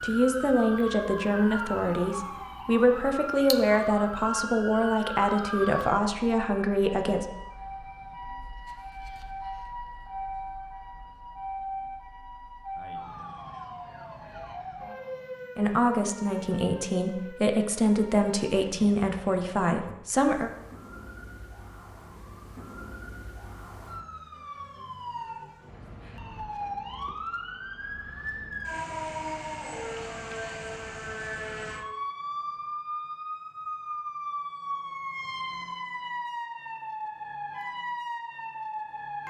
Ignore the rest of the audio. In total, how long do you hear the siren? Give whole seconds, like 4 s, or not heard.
39 s.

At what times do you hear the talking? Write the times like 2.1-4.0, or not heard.
0.0-7.2, 15.6-20.5.